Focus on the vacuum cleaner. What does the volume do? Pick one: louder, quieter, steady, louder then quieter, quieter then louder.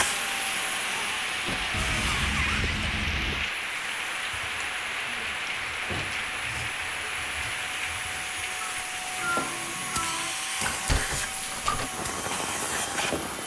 quieter then louder.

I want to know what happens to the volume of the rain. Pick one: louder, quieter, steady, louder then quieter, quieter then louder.
quieter.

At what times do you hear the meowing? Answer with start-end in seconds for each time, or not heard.
1.7-3.5, 9.2-10.3.